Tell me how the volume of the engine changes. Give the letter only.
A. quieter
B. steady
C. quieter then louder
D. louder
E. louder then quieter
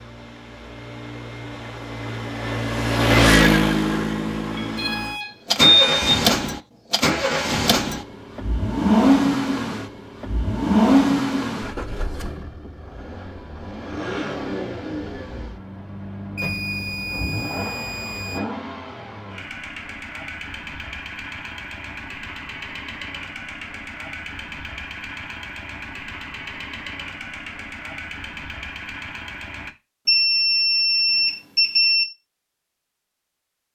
A.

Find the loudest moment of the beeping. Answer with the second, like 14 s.
6 s.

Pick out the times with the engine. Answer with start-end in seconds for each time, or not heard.
0.0-29.8.